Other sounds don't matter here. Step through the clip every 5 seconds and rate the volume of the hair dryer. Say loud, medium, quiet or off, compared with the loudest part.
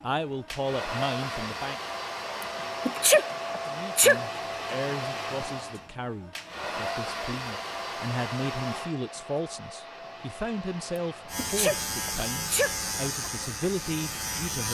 loud, loud, medium.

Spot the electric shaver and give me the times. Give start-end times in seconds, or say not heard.
11.2-14.6.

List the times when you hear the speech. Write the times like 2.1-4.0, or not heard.
0.0-1.8, 3.6-14.6.